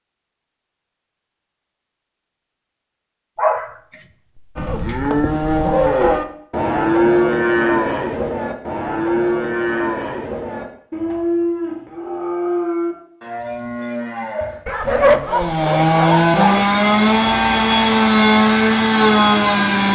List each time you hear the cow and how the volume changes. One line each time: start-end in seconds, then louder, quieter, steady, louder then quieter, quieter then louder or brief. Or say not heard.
4.5-15.2 quieter.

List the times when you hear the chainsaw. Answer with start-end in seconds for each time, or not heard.
15.2-19.9.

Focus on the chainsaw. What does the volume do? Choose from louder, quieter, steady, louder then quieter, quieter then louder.
steady.